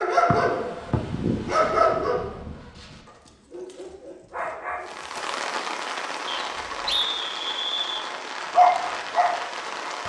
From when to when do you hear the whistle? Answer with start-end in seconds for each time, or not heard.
0.3-1.0, 6.2-8.1.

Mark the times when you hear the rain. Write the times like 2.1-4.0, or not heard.
4.8-10.0.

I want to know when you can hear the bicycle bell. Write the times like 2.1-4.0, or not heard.
not heard.